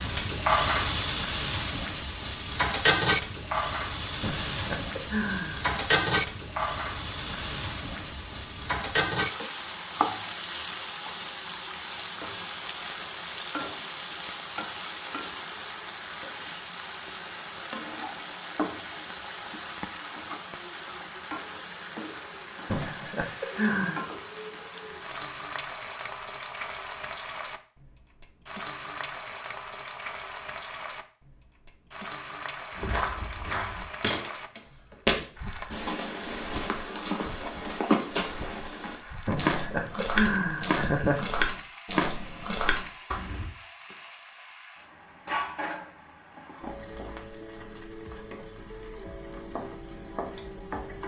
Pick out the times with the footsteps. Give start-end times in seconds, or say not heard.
32.7-43.5.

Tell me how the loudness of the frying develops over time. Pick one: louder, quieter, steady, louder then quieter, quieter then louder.
quieter.